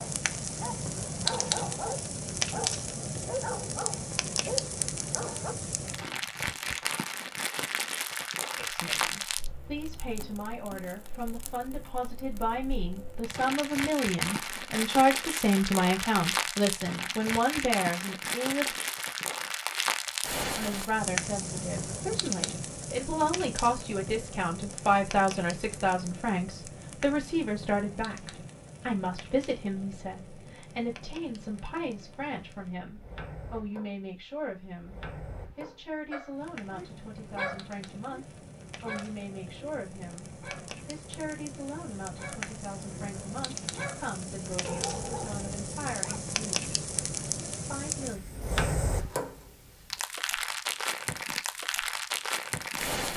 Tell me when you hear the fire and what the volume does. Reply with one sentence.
The fire can be heard from 0.0 to 53.1 s, getting quieter then louder.